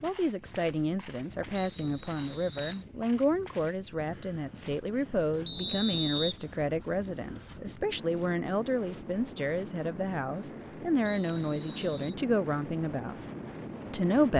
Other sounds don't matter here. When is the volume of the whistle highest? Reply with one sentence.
The volume of the whistle peaks at 6 seconds.